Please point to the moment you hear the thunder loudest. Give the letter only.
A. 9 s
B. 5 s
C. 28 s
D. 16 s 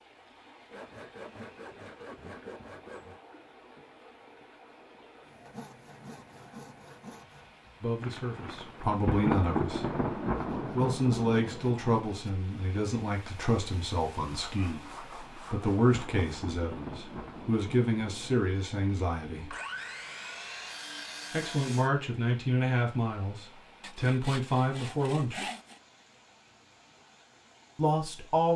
A.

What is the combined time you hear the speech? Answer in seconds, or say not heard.
16 s.